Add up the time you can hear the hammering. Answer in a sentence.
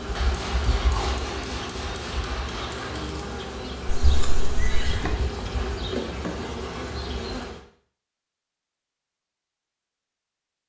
The hammering can be heard for 3 seconds in total.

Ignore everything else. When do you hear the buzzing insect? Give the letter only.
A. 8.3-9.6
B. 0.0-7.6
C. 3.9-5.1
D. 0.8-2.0
B.